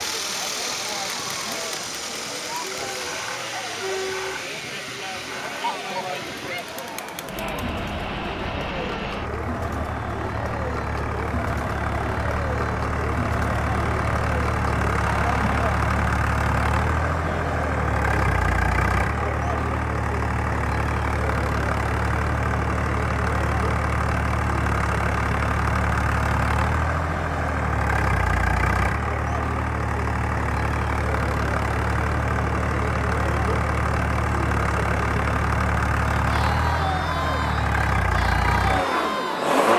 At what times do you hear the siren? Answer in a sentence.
The siren can't be heard in this clip.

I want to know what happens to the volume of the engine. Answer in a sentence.
The loudness of the engine goes up.